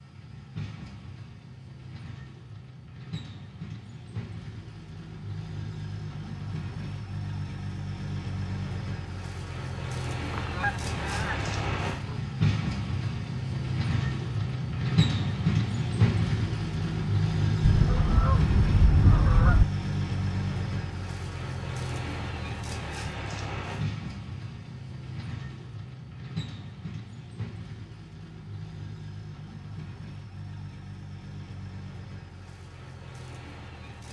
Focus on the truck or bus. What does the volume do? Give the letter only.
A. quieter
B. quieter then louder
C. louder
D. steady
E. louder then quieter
E.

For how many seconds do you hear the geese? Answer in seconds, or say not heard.
4 s.